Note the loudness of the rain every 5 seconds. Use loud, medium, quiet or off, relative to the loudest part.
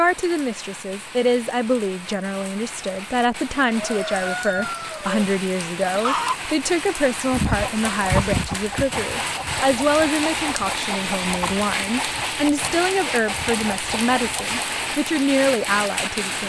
medium, loud, loud, loud.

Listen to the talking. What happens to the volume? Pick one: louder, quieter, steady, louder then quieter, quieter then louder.
steady.